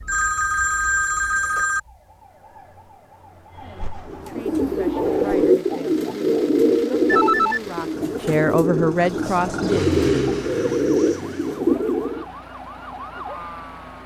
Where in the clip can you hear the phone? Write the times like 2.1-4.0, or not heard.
0.1-1.8, 7.0-8.4.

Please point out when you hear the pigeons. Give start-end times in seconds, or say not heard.
4.1-12.2.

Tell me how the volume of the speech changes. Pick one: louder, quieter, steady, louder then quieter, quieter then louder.
louder.